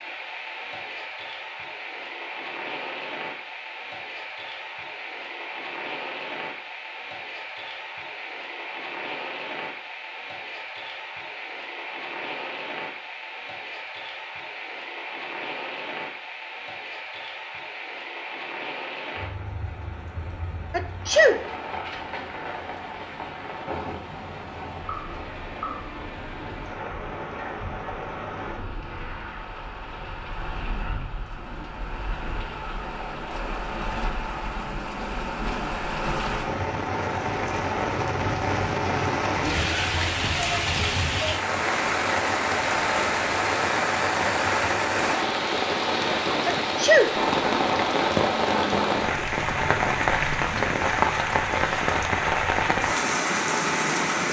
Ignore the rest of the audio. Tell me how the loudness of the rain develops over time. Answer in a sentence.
The loudness of the rain goes up.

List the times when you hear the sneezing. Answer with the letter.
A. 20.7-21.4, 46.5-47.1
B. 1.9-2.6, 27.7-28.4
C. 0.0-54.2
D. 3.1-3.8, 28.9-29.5
A.